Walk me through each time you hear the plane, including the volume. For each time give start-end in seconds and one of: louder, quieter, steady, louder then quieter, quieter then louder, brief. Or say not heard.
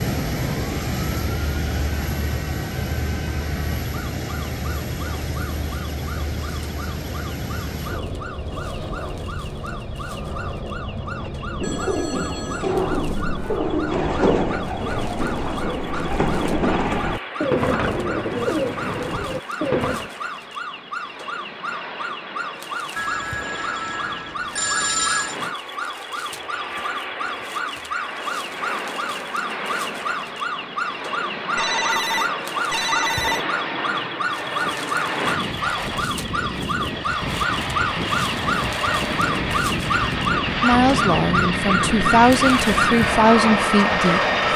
0.0-44.5 quieter then louder.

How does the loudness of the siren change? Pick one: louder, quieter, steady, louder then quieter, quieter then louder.
louder.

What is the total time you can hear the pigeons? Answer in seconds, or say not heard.
9 s.